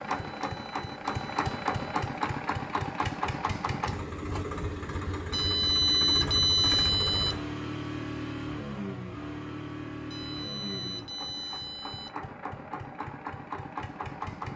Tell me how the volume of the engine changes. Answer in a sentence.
The volume of the engine goes down.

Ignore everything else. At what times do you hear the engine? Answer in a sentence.
You can hear the engine from 0.0 to 14.5 s.